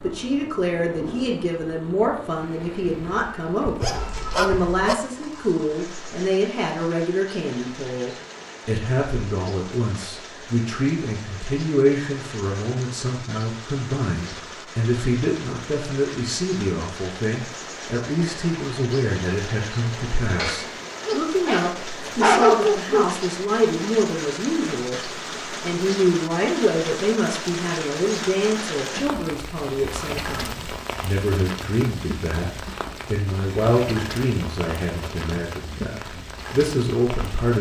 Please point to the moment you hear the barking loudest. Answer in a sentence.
The loudest moment of the barking is at 22 seconds.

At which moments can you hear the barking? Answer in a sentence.
The barking can be heard from 3.6 to 5.0 s and from 20.4 to 23.1 s.